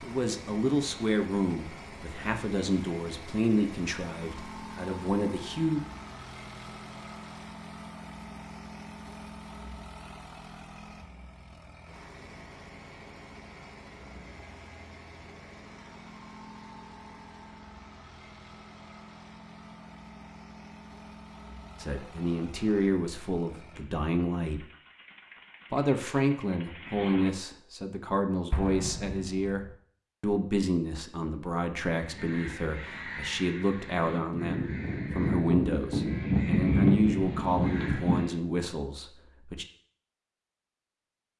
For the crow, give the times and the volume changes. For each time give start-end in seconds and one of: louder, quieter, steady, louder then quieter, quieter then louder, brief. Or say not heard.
31.9-38.4 louder.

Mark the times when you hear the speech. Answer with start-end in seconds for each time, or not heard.
0.0-5.8, 21.8-24.6, 25.7-39.6.